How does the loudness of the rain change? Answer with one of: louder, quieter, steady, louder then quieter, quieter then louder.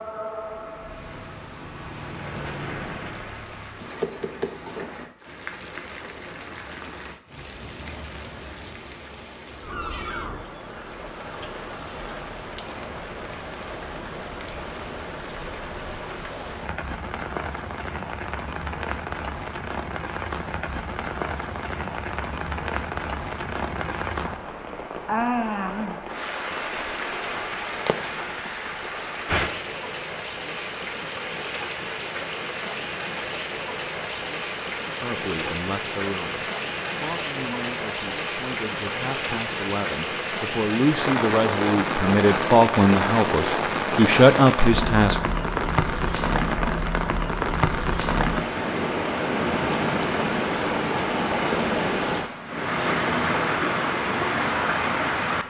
louder.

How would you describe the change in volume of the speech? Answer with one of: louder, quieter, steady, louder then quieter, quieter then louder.
louder.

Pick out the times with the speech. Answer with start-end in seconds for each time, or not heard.
35.0-45.2.